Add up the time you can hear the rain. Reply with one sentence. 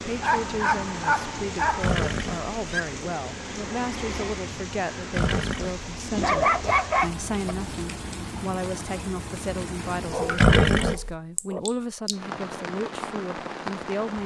The rain can be heard for 14 seconds in total.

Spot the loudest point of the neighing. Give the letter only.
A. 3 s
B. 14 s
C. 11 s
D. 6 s
C.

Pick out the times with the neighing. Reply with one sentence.
You can hear the neighing from 1.8 to 2.8 s, from 5.1 to 5.8 s and from 10.3 to 11.2 s.